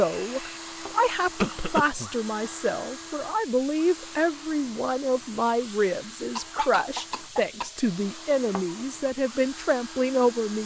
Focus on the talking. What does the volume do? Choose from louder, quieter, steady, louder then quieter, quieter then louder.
steady.